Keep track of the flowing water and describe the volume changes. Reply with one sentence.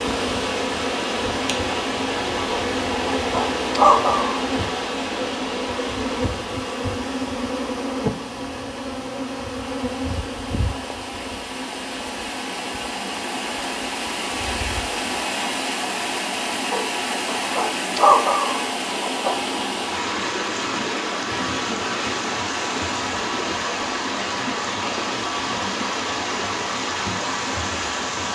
The volume of the flowing water goes down, then up.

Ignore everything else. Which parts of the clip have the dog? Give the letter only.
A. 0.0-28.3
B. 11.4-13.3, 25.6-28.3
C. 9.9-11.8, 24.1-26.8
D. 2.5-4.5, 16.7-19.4
D.